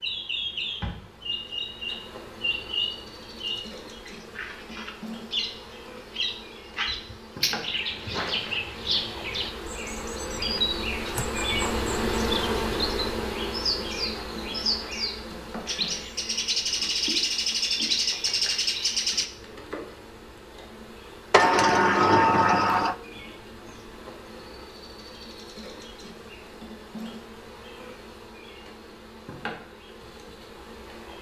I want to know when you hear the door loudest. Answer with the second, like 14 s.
22 s.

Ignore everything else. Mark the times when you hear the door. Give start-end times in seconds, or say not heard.
10.3-11.2, 21.3-22.9.